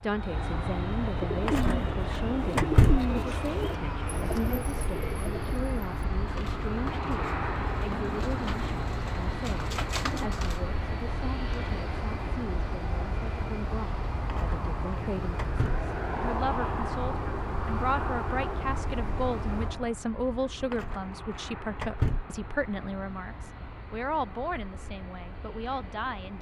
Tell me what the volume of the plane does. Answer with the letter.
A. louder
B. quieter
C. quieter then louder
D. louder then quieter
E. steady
B.